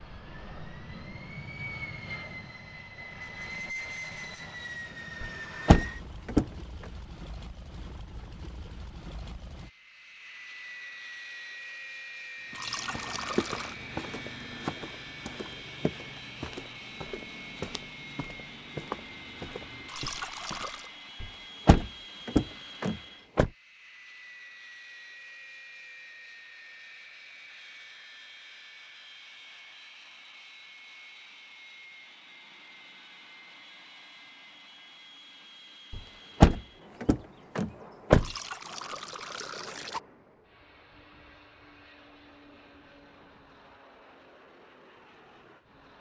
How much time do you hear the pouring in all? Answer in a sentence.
The pouring can be heard for 4 seconds in total.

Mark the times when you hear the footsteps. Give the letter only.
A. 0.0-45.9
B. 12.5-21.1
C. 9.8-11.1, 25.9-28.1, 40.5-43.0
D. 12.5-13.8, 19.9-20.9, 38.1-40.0
B.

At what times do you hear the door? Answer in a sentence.
The door can be heard from 5.2 to 6.5 s, from 21.2 to 23.5 s and from 35.9 to 38.3 s.